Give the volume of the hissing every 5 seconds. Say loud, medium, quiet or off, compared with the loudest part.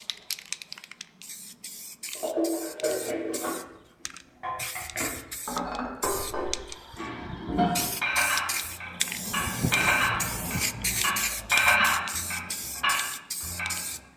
medium, loud, loud.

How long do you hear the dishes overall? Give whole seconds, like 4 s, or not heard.
11 s.